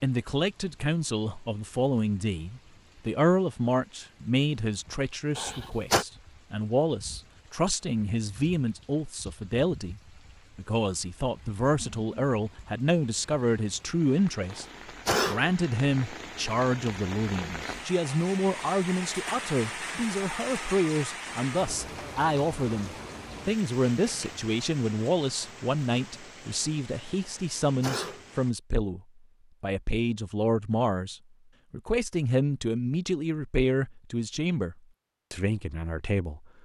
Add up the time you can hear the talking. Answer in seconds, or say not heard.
35 s.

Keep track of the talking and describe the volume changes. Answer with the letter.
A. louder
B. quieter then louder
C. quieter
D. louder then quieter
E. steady
E.